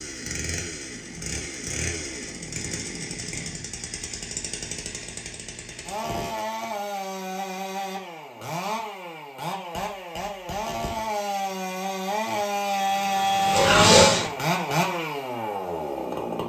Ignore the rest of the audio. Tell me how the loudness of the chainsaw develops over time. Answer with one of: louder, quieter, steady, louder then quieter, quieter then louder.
louder.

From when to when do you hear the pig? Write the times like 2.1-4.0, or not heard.
12.8-14.3.